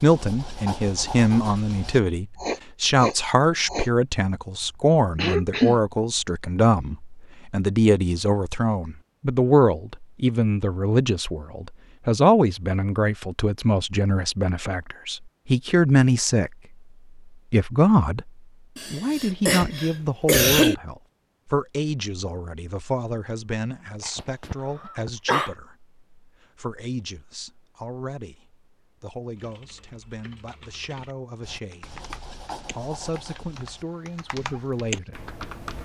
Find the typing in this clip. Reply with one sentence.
You can hear the typing from 29.4 to 35.8 s.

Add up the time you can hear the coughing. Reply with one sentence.
The coughing can be heard for 4 seconds in total.